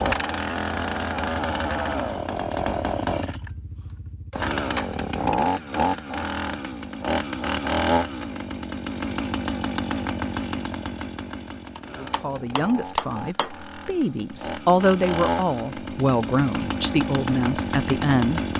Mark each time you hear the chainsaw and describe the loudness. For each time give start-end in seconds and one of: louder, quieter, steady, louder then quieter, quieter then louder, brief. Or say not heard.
0.0-18.5 quieter then louder.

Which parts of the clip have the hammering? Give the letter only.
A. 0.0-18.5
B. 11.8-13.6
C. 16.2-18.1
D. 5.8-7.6
B.